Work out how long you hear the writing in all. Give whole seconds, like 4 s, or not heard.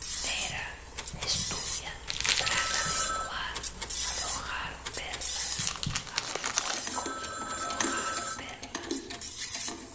not heard.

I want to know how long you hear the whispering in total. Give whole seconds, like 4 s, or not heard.
9 s.